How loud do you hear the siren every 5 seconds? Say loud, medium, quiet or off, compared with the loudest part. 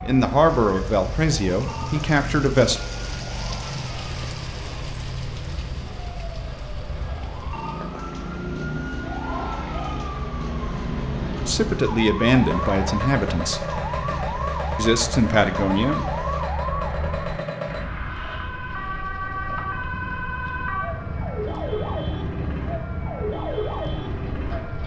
medium, medium, loud, loud, loud.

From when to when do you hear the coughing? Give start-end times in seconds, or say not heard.
not heard.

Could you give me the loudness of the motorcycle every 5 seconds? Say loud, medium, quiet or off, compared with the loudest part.
loud, loud, loud, loud, medium.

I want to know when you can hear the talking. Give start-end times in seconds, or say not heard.
0.0-2.8, 11.4-13.6, 14.8-16.1.